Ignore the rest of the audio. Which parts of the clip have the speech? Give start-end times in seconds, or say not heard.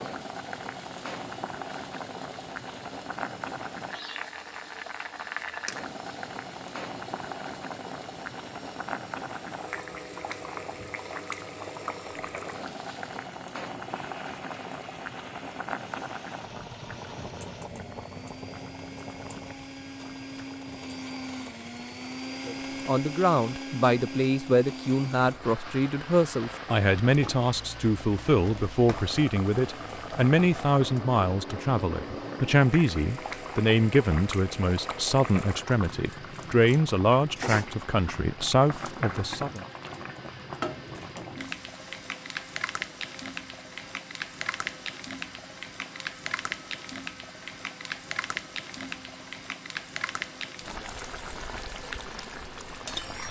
22.4-39.6.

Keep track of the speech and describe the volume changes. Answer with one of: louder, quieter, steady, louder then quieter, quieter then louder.
steady.